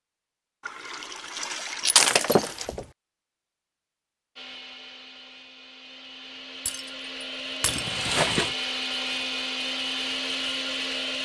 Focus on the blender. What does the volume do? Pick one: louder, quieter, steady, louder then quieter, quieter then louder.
louder.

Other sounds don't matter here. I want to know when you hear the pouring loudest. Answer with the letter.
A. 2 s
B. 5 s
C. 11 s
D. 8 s
D.